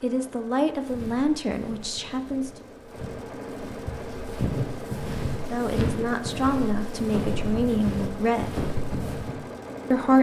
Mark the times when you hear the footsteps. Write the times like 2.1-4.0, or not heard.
0.7-9.4.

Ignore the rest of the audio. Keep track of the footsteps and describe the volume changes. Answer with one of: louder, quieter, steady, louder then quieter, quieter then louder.
louder.